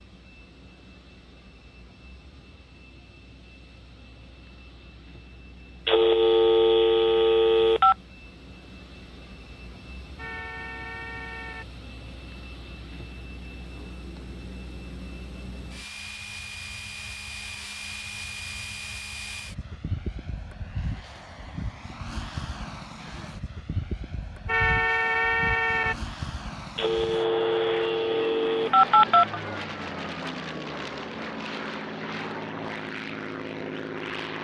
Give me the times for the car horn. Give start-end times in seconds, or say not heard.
10.2-11.7, 24.4-25.9.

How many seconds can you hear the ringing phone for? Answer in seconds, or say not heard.
5 s.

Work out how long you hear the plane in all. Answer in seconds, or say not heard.
34 s.